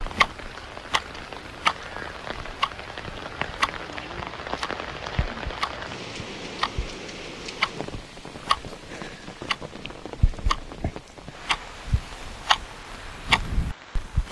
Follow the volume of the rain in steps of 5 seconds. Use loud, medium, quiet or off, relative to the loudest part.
loud, loud, medium.